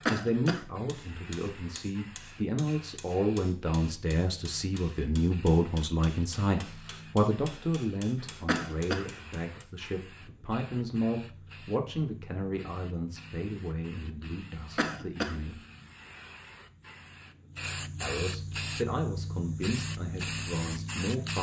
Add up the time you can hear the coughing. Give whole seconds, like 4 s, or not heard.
2 s.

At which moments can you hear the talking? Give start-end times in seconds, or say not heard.
0.1-15.6, 18.0-21.3.